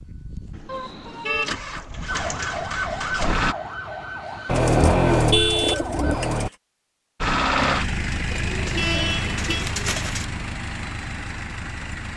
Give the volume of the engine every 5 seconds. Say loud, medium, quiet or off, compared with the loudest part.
medium, loud, medium.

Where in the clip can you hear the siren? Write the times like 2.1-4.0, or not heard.
2.0-6.4.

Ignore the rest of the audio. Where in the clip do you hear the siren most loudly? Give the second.
3 s.